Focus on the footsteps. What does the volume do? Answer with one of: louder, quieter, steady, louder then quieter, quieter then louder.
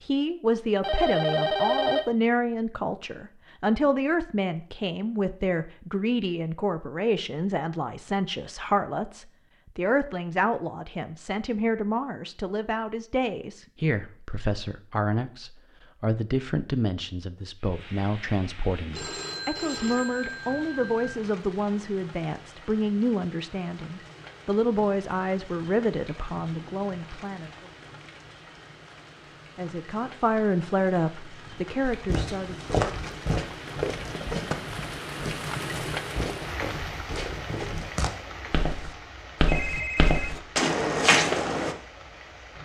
quieter then louder.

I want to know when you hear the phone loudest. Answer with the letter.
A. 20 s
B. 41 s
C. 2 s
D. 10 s
C.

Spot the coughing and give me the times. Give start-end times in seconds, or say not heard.
not heard.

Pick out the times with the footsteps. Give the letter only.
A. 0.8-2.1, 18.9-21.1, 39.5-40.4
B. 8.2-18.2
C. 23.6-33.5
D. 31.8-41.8
D.